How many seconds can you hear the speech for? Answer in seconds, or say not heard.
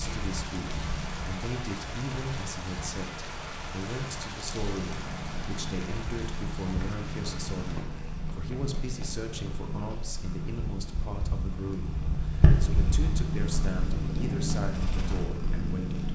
16 s.